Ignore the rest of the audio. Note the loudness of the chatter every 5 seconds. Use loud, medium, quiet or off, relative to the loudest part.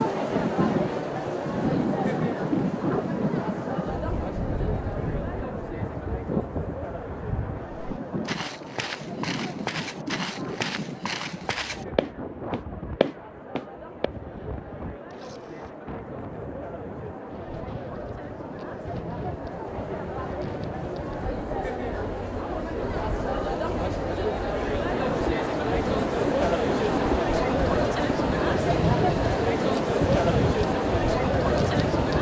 medium, quiet, quiet, quiet, medium, loud, loud.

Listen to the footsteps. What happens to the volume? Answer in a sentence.
The volume of the footsteps goes up.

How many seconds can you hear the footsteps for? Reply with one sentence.
The footsteps can be heard for 6 seconds in total.